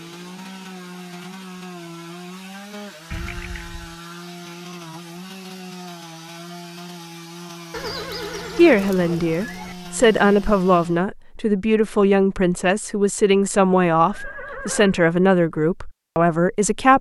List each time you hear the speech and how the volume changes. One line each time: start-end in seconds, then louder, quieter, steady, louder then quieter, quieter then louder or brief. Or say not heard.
8.6-16.9 steady.